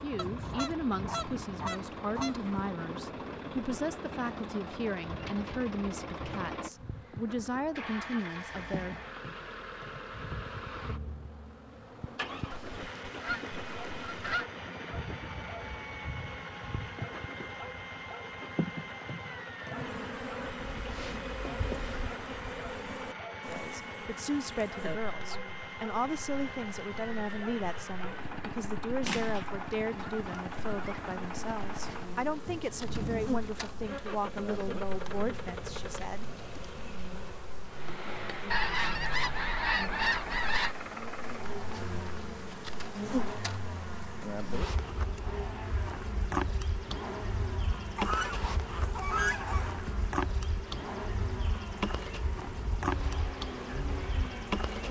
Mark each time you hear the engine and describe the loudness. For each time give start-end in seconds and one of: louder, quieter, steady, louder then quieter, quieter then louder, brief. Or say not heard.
0.0-54.8 steady.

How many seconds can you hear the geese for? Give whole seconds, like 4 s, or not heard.
12 s.